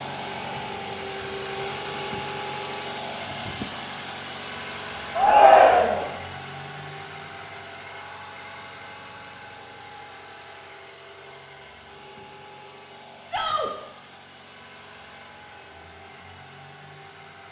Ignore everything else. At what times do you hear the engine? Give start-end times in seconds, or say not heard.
0.0-17.4.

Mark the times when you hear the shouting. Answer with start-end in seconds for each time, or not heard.
5.2-6.0, 13.2-13.7.